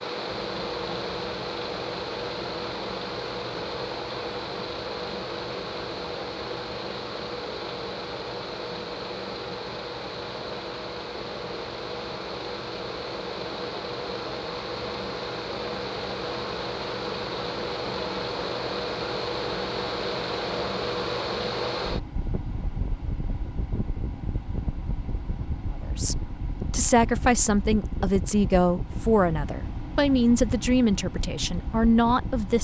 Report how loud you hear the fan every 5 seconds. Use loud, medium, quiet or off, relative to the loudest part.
loud, loud, loud, loud, loud, medium, medium.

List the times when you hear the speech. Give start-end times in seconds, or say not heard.
25.9-32.5.